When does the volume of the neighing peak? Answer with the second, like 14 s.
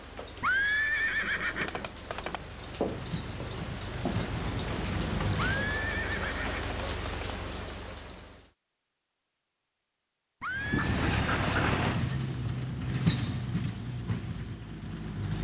1 s.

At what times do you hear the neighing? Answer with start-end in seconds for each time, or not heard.
0.4-2.4, 5.3-7.1, 10.4-10.9.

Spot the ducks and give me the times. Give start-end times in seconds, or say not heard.
10.7-11.7.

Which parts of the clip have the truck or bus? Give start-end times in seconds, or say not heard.
2.5-5.8, 10.5-15.4.